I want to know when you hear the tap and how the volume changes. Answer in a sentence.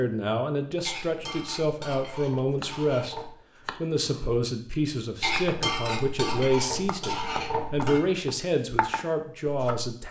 The tap can't be heard in this clip.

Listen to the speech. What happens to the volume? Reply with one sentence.
The volume of the speech stays about the same.